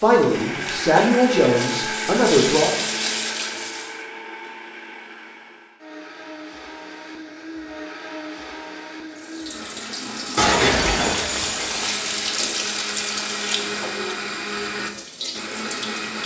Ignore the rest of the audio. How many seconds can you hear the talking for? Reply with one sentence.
You can hear the talking for 3 seconds altogether.